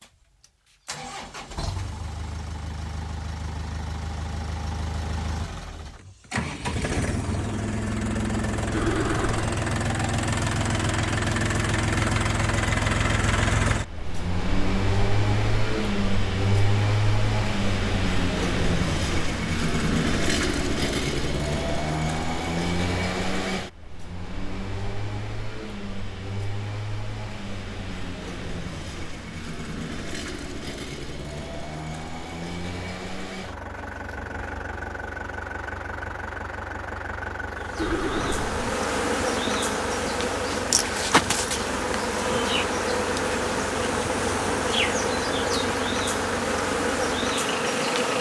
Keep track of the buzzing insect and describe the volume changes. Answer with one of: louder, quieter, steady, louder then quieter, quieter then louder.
steady.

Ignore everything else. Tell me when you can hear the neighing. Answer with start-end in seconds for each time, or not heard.
8.7-9.6, 37.8-38.6.